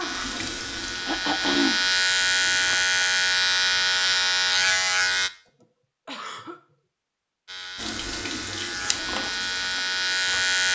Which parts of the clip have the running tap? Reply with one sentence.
You can hear the running tap from 0.0 to 2.7 s and from 7.8 to 10.7 s.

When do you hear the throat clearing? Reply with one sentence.
The throat clearing can be heard from 1.1 to 1.8 s and from 5.5 to 6.8 s.